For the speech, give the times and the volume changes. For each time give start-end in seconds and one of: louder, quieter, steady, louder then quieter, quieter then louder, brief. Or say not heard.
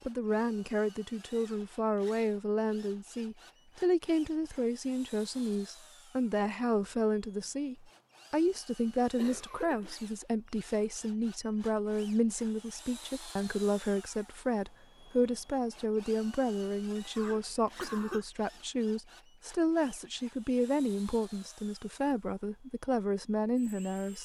0.1-24.2 steady.